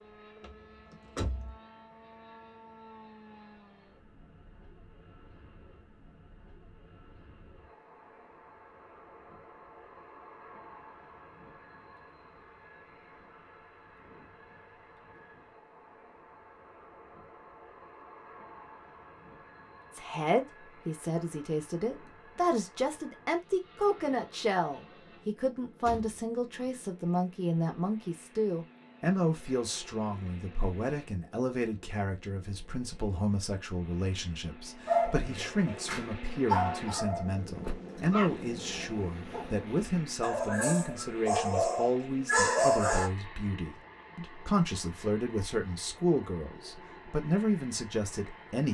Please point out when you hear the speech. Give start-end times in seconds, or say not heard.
19.9-48.6.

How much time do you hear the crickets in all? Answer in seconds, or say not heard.
not heard.